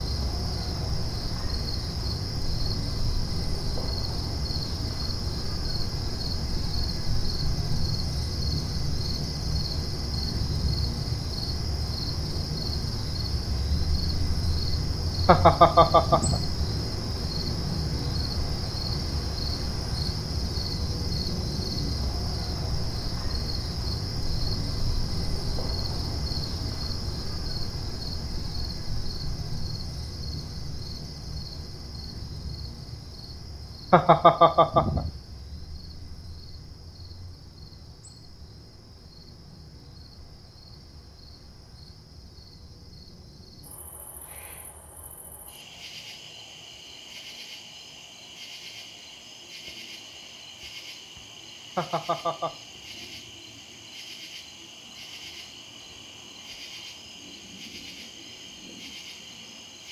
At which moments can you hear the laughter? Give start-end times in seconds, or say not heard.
15.2-16.5, 33.9-35.1, 51.8-52.5.